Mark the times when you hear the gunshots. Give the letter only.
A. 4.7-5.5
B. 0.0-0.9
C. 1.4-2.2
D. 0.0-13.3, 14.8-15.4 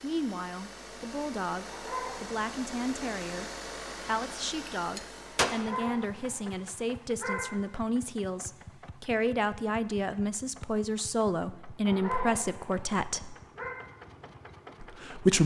A.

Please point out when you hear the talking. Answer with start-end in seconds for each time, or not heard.
0.0-13.3, 14.8-15.4.